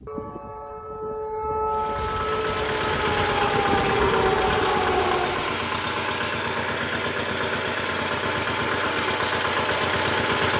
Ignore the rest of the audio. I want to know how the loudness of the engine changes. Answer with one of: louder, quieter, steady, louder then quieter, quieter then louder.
steady.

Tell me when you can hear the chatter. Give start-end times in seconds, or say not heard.
not heard.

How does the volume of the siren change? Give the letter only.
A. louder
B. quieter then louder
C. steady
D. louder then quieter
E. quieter
A.